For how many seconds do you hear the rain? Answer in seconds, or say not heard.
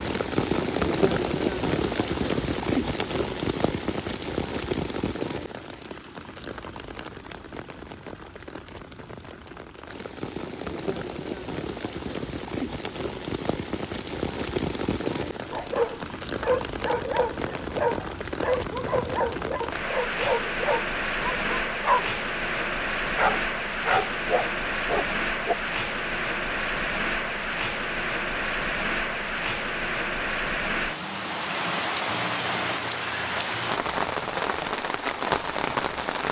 36 s.